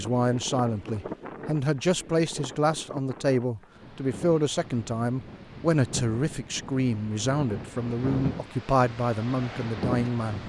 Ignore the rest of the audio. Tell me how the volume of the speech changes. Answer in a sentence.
The loudness of the speech stays about the same.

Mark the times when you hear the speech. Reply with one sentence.
The speech can be heard from 0.0 to 10.4 s.